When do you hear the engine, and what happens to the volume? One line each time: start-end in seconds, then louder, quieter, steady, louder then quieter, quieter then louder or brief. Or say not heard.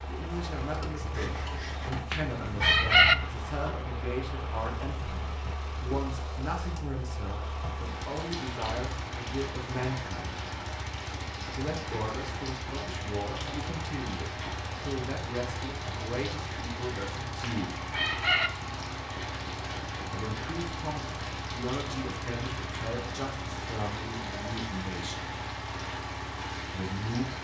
0.0-27.3 steady.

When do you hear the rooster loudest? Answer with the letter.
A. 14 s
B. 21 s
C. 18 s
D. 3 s
D.